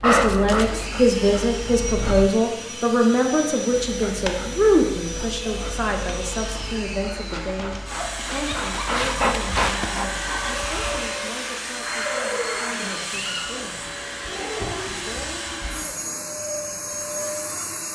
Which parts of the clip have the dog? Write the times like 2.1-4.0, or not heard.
0.0-2.3, 3.7-11.1.